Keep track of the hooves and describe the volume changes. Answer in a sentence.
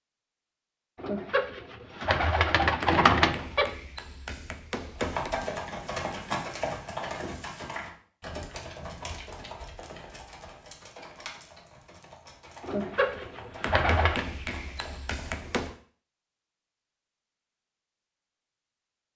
The loudness of the hooves goes down.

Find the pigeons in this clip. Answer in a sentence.
The pigeons can be heard from 1.0 to 3.7 s and from 12.6 to 14.2 s.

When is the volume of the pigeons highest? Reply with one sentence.
The volume of the pigeons peaks at 3 seconds.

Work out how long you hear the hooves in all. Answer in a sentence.
The hooves can be heard for 11 seconds in total.